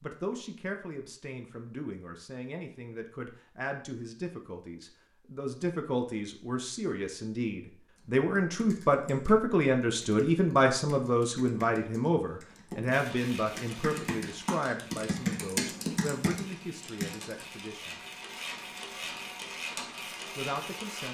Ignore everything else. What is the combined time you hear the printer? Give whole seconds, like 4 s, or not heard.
8 s.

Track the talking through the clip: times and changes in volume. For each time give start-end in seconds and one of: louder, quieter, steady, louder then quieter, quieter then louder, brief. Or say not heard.
0.0-17.9 louder then quieter
20.4-21.0 brief.